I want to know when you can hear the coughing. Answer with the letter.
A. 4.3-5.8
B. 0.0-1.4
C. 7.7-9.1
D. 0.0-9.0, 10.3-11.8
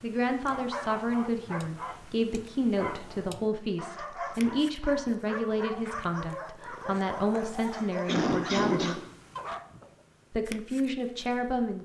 C.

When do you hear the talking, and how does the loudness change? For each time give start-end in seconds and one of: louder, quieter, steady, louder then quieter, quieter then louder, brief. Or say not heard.
0.0-9.0 steady
10.3-11.8 brief.